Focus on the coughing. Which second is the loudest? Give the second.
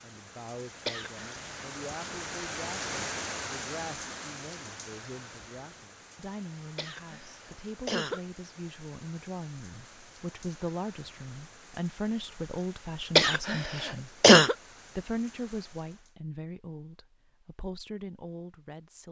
14 s.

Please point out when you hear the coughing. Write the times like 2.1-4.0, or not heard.
0.8-1.4, 6.8-8.2, 13.2-14.6.